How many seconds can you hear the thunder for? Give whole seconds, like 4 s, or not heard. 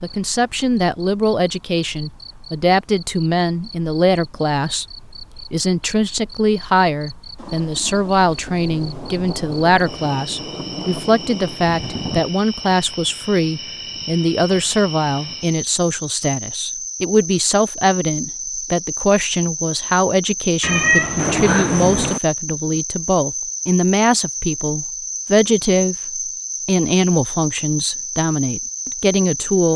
6 s.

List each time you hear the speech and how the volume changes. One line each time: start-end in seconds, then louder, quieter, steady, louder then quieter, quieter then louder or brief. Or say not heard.
0.0-4.8 steady
5.5-29.7 steady.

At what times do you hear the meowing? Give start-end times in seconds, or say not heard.
20.6-21.9.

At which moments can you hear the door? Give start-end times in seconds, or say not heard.
not heard.